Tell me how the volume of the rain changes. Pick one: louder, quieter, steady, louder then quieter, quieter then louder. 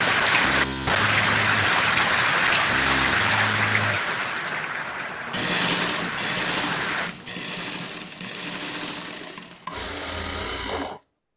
quieter.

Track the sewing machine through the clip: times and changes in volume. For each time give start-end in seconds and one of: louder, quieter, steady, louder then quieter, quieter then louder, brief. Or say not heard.
0.2-11.0 louder then quieter.